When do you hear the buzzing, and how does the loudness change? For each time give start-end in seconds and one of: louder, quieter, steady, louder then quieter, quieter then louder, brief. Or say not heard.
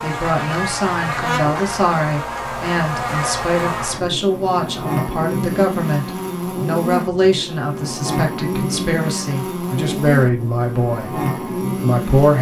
0.0-12.3 steady.